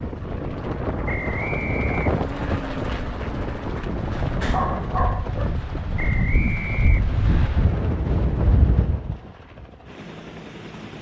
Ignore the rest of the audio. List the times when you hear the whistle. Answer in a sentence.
You can hear the whistle from 1.1 to 2.6 s and from 6.0 to 7.5 s.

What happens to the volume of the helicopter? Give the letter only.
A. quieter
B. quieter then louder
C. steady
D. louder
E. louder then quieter
A.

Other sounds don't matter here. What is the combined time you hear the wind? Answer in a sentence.
You can hear the wind for 9 seconds altogether.